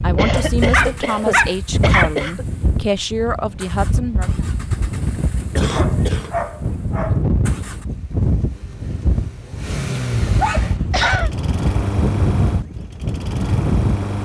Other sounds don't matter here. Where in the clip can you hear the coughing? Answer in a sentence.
The coughing can be heard from 0.1 to 2.5 s, from 5.5 to 6.3 s and from 10.7 to 11.3 s.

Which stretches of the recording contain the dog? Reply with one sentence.
You can hear the dog from 0.7 to 2.1 s, from 5.7 to 7.2 s and from 9.9 to 11.2 s.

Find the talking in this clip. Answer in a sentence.
The talking can be heard from 0.0 to 4.5 s.